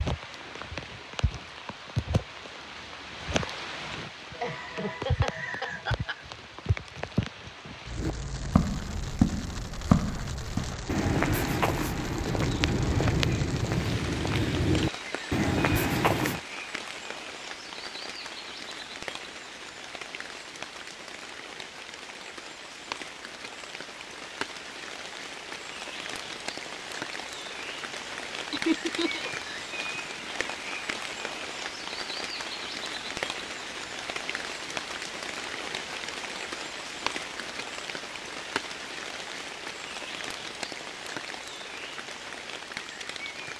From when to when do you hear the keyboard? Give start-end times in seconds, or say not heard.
not heard.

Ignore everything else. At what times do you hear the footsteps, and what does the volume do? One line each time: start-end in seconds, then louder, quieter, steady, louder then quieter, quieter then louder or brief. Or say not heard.
8.0-16.4 steady.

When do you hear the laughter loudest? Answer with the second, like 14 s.
29 s.